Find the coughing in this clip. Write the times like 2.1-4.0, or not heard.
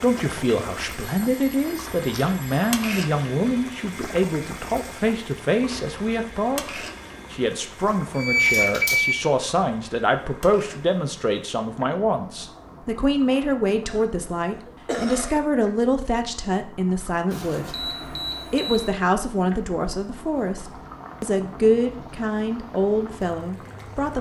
13.9-15.4.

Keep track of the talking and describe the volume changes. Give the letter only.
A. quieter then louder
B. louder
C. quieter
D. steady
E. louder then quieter
D.